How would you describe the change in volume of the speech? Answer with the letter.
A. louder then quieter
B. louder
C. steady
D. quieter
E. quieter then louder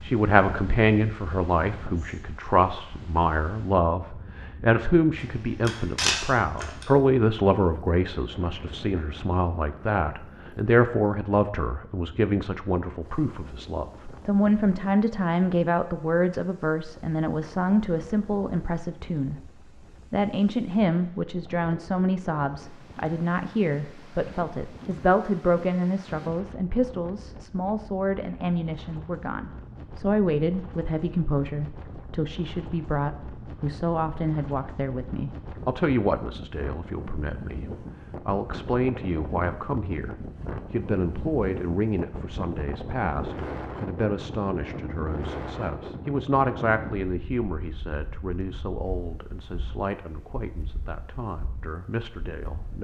D.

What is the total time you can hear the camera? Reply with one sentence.
The camera can be heard for 2 seconds in total.